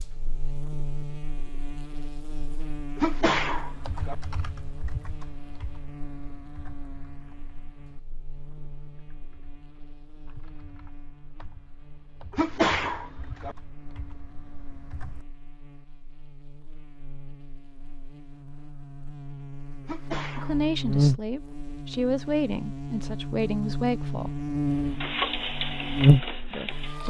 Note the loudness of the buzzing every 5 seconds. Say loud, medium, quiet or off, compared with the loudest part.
quiet, quiet, quiet, quiet, medium, loud.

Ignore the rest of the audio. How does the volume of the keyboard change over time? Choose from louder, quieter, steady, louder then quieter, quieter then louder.
quieter then louder.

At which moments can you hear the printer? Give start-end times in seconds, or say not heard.
24.8-27.0.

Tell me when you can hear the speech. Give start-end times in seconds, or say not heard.
20.4-24.3, 26.5-27.0.